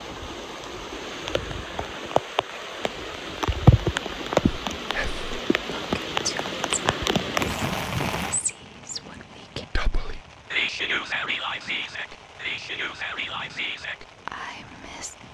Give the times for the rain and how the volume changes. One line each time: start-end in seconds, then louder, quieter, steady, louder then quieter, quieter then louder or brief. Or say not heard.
0.0-15.2 louder then quieter.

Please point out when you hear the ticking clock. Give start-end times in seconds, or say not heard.
not heard.